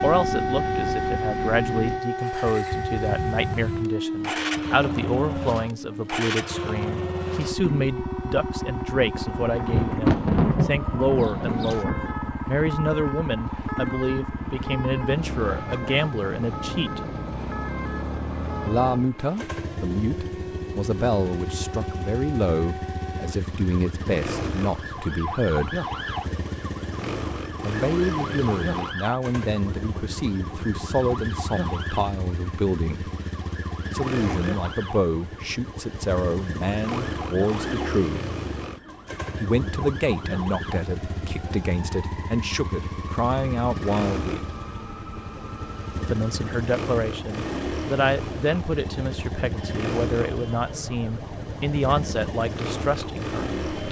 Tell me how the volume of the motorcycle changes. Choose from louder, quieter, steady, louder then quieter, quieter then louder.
steady.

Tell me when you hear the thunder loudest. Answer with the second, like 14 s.
10 s.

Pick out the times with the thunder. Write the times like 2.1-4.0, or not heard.
9.2-12.3.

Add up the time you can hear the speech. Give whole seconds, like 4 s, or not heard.
47 s.